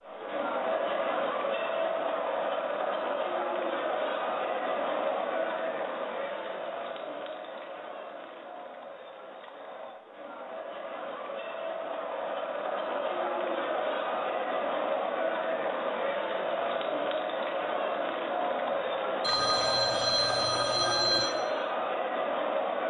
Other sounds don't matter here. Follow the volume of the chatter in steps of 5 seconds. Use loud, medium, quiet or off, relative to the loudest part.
loud, medium, loud, loud, loud.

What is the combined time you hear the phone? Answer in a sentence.
You can hear the phone for 2 seconds altogether.